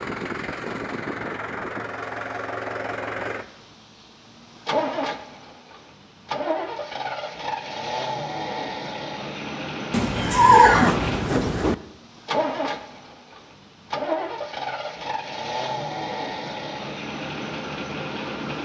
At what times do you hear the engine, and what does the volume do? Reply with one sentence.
The engine can be heard from 0.0 to 18.6 s, at a steady volume.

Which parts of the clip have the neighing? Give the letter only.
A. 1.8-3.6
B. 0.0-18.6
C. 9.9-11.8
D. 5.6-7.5
C.